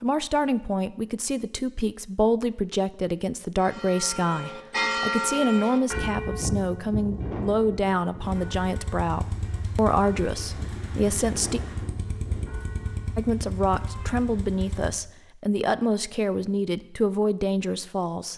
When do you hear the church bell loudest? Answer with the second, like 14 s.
5 s.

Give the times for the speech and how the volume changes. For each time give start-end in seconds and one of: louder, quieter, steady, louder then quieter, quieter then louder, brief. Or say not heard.
0.0-11.6 steady
13.2-18.3 steady.